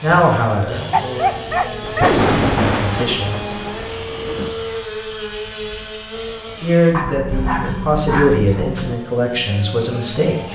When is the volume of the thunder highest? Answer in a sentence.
The volume of the thunder peaks at 2 seconds.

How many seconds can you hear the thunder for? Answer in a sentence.
You can hear the thunder for 3 seconds altogether.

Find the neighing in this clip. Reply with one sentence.
The neighing can't be heard in this clip.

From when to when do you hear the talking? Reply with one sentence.
You can hear the talking from 0.0 to 3.5 s and from 6.6 to 10.5 s.